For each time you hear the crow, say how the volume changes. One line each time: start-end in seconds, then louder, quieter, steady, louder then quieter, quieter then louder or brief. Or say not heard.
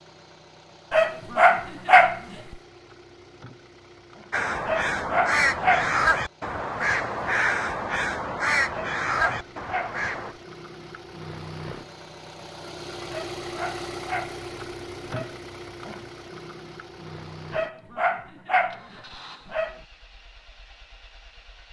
4.3-10.3 steady.